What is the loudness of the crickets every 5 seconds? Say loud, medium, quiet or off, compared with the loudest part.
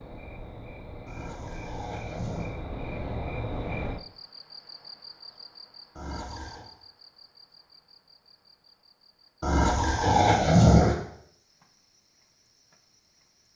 loud, quiet, quiet.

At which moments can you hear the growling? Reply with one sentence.
You can hear the growling from 1.1 to 2.5 s, from 6.0 to 6.7 s and from 9.4 to 10.9 s.